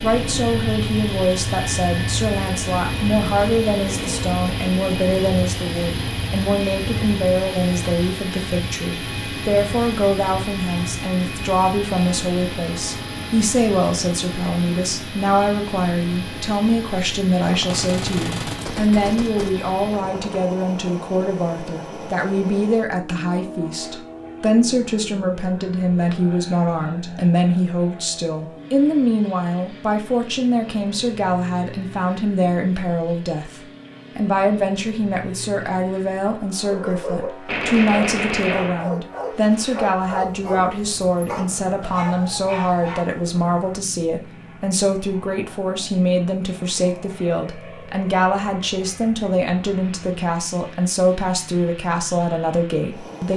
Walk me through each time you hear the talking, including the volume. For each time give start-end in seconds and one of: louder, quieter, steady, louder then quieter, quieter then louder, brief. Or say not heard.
0.0-53.3 steady.